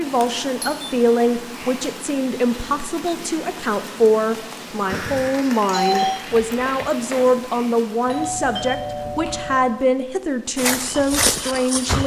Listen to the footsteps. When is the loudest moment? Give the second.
11 s.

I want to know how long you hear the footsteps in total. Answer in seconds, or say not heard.
3 s.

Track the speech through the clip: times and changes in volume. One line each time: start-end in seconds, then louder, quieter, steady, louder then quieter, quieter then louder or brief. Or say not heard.
0.0-12.0 steady.